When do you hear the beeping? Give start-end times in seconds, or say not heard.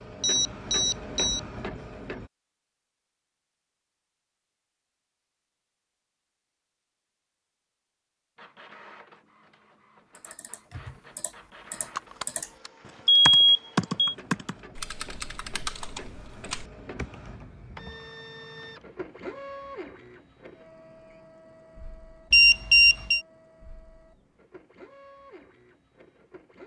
0.2-1.4, 11.9-14.2, 22.3-23.2.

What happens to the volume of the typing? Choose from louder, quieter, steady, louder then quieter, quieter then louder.
louder then quieter.